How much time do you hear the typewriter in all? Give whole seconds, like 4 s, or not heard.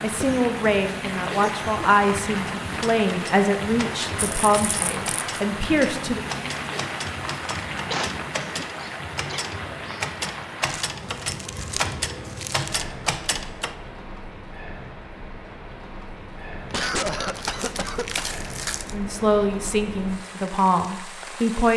11 s.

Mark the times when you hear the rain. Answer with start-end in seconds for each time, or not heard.
0.0-21.7.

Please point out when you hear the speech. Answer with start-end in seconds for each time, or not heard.
0.0-6.2, 18.9-21.7.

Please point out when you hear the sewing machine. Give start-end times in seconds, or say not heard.
not heard.